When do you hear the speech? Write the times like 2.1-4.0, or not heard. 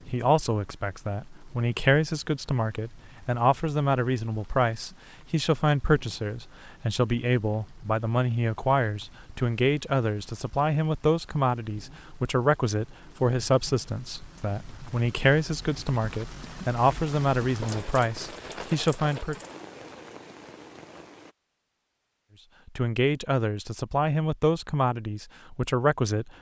0.1-19.4, 22.6-26.3.